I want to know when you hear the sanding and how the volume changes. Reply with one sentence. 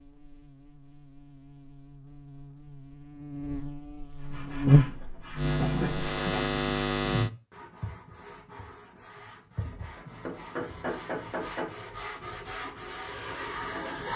The sanding can be heard from 4.2 to 14.1 s, getting quieter then louder.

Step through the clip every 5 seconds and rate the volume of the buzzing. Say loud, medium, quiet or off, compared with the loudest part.
loud, loud, off.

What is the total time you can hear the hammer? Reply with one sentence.
You can hear the hammer for 2 seconds altogether.